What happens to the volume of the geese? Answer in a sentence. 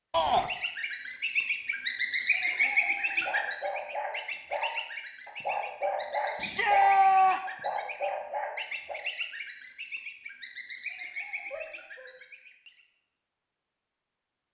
The loudness of the geese goes down.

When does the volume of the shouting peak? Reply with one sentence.
The volume of the shouting peaks at 7 seconds.